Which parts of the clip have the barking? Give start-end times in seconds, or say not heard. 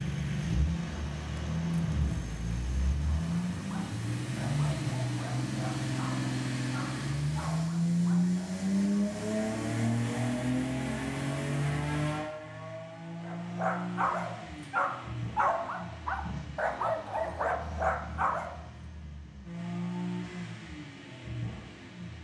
3.0-8.6, 13.2-18.7.